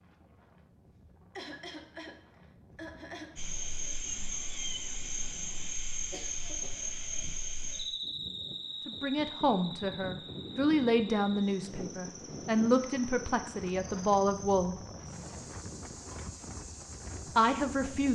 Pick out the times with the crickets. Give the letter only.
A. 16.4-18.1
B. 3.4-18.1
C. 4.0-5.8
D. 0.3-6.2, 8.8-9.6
B.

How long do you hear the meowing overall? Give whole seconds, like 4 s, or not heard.
2 s.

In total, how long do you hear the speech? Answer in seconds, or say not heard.
7 s.